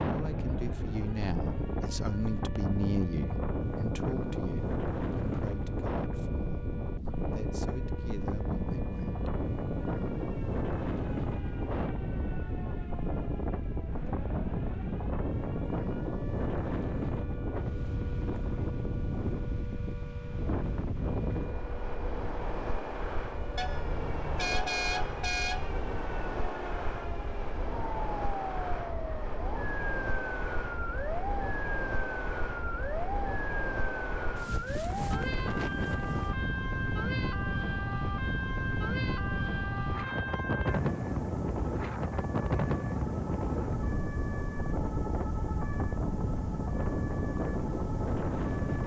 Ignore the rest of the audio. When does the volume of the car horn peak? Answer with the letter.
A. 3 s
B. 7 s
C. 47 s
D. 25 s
D.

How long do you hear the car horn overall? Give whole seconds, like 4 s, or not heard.
2 s.